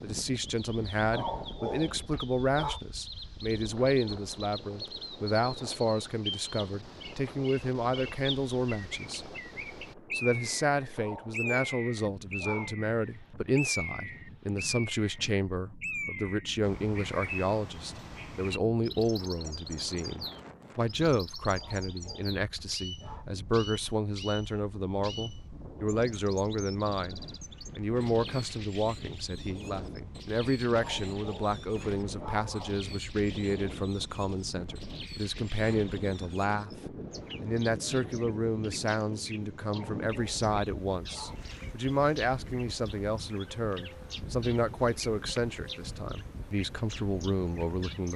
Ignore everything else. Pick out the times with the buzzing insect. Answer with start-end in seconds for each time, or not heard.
not heard.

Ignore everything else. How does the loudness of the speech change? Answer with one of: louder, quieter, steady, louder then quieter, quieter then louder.
steady.